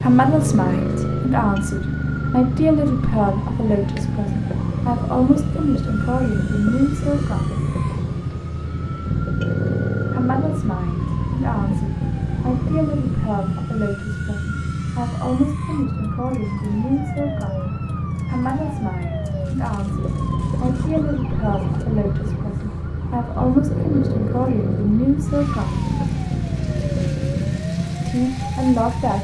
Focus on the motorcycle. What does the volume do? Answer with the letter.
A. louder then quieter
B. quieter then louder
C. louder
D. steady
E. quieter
D.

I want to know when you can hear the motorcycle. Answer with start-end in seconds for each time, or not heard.
0.0-29.1.